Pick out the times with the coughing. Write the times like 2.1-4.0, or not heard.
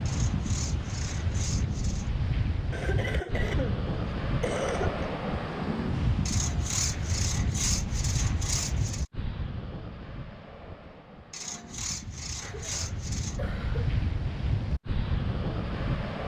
2.7-5.0, 12.4-13.9.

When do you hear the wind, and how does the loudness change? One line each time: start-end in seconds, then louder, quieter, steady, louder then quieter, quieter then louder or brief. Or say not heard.
0.0-16.2 quieter then louder.